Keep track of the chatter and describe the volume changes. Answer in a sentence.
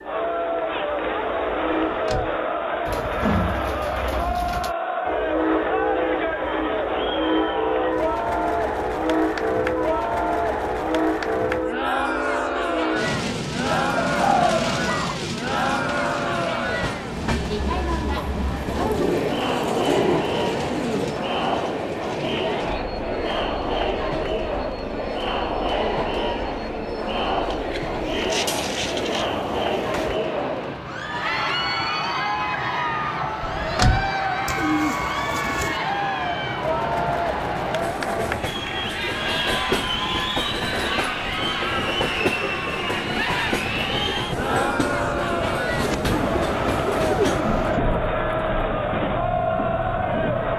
The loudness of the chatter stays about the same.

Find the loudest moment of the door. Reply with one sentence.
The volume of the door peaks at 34 seconds.